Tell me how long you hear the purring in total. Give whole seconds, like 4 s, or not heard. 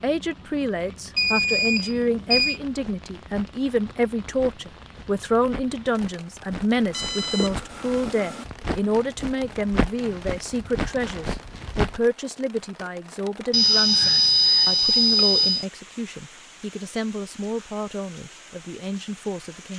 not heard.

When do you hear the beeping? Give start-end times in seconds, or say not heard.
1.1-2.6, 6.9-8.4, 13.5-15.7.